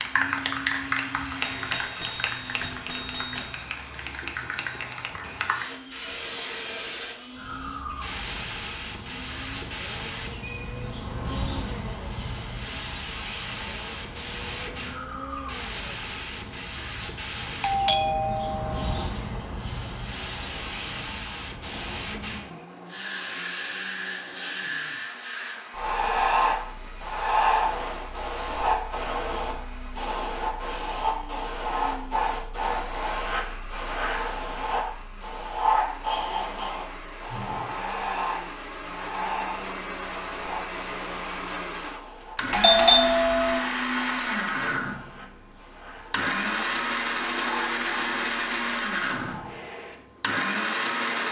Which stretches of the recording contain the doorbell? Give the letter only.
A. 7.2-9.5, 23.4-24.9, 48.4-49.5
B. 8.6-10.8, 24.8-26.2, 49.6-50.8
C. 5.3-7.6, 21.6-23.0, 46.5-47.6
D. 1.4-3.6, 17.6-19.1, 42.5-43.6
D.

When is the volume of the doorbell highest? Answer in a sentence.
The volume of the doorbell peaks at 43 seconds.